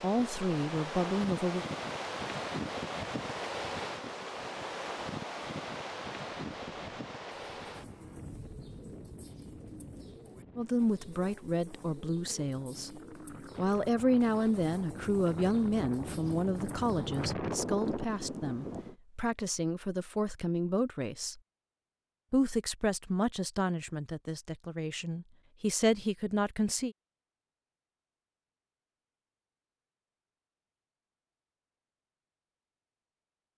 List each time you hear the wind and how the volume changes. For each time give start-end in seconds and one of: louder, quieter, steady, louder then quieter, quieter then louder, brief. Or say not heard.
0.0-18.9 quieter then louder.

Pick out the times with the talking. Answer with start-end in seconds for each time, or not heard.
0.0-1.6, 10.6-21.4, 22.3-26.9.